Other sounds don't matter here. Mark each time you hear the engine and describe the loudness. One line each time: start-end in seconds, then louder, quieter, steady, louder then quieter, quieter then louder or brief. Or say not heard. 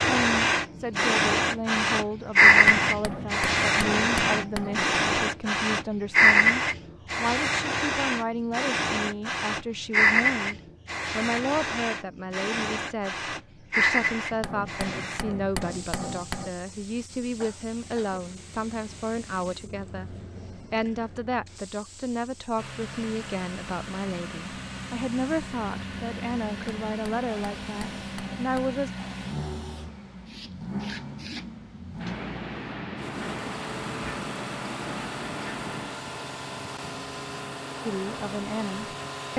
22.6-39.3 steady.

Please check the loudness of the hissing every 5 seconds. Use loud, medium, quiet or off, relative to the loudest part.
loud, loud, medium, quiet, quiet, quiet, quiet, quiet.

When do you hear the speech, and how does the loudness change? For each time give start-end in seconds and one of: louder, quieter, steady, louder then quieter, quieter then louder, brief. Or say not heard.
0.1-28.9 steady
37.8-39.3 brief.